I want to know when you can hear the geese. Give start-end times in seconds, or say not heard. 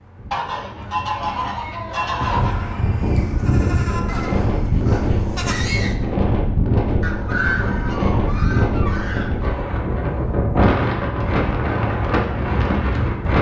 0.3-2.5, 7.0-9.8.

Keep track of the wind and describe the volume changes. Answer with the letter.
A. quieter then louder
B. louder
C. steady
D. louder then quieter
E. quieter
B.